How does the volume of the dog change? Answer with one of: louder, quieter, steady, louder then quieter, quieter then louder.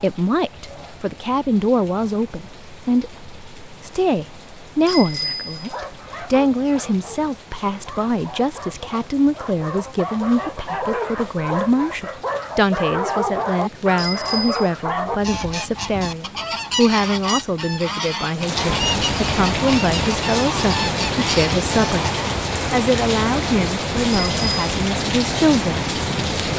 louder.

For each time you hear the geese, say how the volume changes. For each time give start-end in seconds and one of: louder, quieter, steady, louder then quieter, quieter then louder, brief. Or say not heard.
15.2-22.3 steady.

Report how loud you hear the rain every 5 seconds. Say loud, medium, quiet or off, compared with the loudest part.
quiet, quiet, quiet, medium, loud, loud.